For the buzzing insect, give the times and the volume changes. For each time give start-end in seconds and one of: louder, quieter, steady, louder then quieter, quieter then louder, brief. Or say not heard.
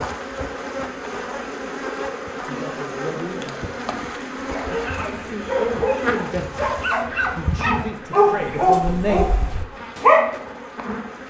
0.0-11.2 quieter.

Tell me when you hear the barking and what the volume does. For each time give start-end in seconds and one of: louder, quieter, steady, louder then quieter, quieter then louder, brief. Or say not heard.
4.5-10.4 louder then quieter.